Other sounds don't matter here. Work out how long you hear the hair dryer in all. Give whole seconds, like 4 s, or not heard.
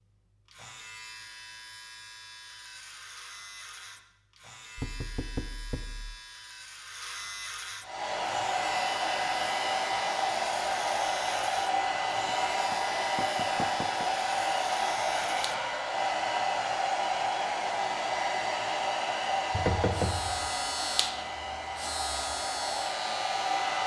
16 s.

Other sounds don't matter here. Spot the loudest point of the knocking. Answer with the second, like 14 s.
20 s.